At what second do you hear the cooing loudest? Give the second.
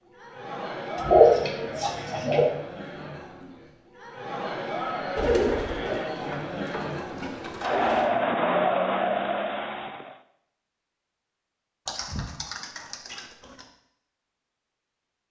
1 s.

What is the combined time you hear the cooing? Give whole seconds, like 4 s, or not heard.
6 s.